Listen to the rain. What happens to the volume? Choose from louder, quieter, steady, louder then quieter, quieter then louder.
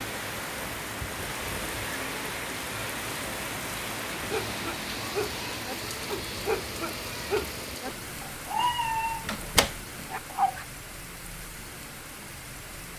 quieter.